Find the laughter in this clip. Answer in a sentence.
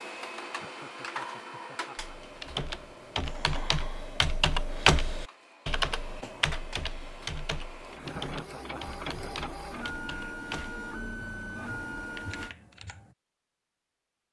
The laughter can be heard from 0.5 to 2.1 s and from 8.0 to 10.4 s.